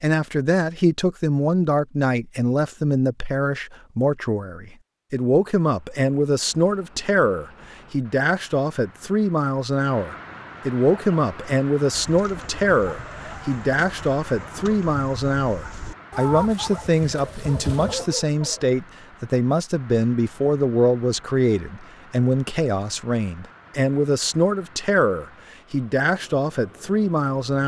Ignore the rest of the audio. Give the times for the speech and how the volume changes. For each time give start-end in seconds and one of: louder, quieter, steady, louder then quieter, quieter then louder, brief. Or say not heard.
0.0-27.6 steady.